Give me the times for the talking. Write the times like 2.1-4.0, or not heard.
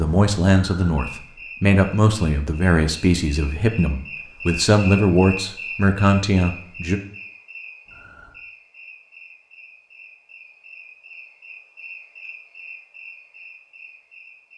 0.0-7.0.